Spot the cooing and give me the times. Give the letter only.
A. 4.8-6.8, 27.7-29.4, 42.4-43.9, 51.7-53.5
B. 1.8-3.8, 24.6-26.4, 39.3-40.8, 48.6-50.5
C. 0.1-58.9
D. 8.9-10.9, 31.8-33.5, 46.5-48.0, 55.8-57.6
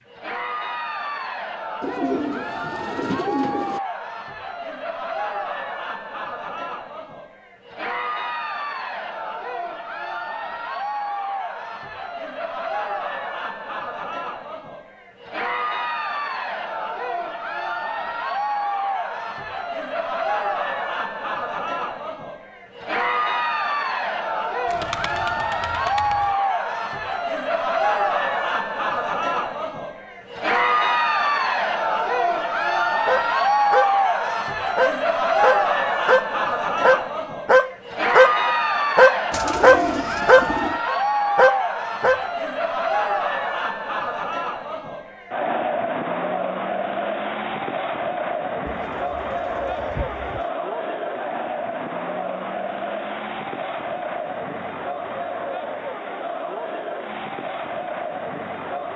B.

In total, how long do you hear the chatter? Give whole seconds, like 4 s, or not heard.
59 s.